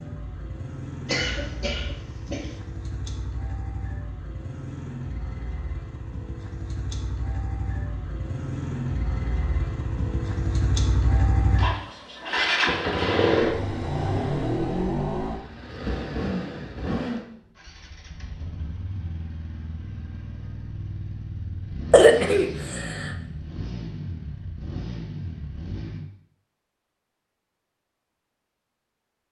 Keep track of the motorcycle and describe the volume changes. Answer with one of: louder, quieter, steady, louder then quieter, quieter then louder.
louder then quieter.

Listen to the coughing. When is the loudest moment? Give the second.
22 s.